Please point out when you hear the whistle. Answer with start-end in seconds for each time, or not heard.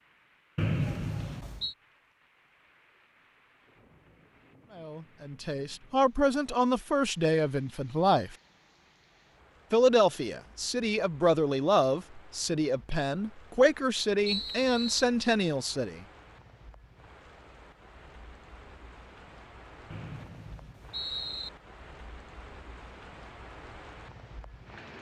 0.6-1.8, 14.2-15.1, 19.9-21.5.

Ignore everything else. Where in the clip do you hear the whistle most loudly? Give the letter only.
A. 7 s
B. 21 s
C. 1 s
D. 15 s
C.